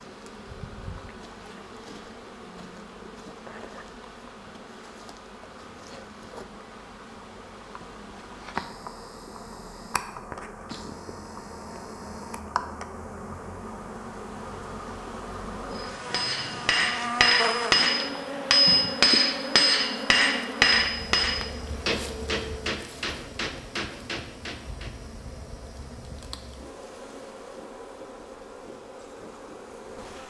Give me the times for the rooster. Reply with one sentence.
You can't hear the rooster here.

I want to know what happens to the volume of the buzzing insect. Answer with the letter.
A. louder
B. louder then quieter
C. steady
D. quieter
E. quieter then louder
B.